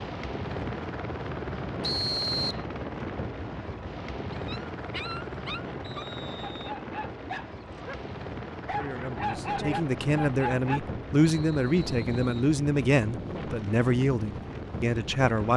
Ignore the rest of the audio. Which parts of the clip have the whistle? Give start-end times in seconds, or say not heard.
1.8-2.6, 5.8-6.8, 11.2-12.5.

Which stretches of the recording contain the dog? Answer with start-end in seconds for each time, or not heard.
4.3-10.8.